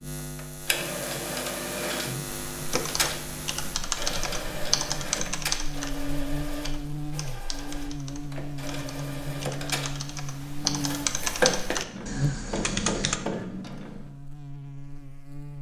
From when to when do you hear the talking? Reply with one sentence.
The talking can't be heard in this clip.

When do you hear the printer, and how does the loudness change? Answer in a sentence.
You can hear the printer from 0.0 to 14.1 s, getting quieter then louder.